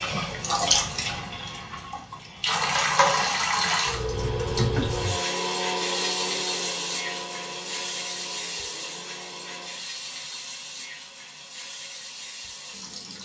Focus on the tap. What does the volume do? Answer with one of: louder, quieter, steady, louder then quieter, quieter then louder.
quieter.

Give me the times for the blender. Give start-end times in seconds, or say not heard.
3.9-9.9.